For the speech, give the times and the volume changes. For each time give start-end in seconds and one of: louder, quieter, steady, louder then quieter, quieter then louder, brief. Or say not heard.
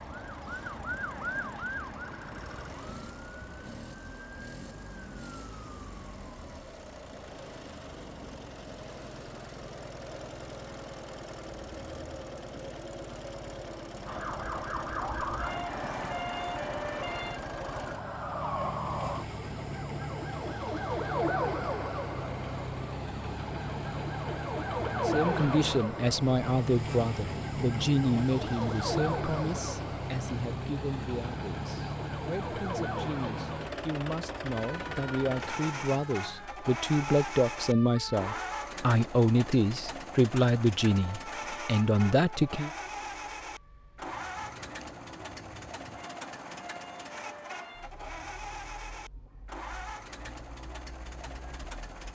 25.1-42.7 quieter then louder.